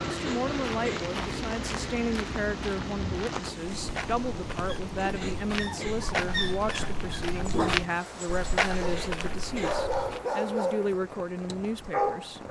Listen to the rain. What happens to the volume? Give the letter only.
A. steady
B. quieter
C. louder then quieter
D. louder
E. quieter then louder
B.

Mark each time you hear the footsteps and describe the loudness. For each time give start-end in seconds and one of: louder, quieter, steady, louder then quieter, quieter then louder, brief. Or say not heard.
0.6-10.2 louder.